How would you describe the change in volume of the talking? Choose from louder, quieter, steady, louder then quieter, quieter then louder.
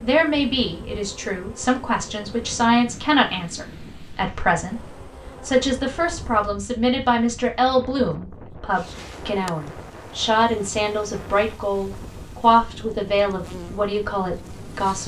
steady.